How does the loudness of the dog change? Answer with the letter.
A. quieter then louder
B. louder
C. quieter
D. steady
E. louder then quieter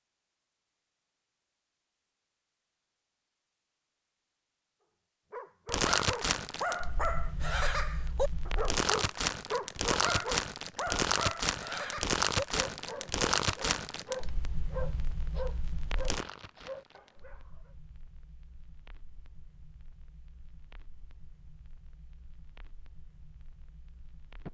C.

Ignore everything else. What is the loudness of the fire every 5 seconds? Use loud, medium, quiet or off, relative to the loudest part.
off, loud, loud, quiet, quiet.